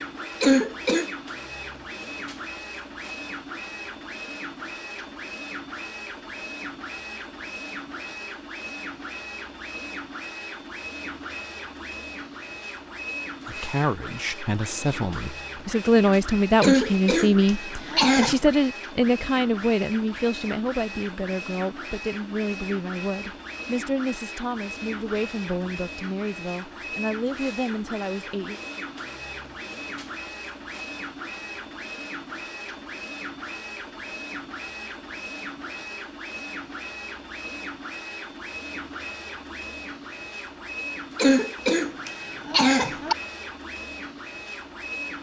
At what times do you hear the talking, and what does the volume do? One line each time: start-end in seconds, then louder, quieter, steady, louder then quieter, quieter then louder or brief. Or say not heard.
13.4-28.6 quieter.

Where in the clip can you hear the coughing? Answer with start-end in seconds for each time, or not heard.
0.4-1.1, 16.6-18.5, 41.1-43.1.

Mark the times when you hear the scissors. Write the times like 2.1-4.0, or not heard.
not heard.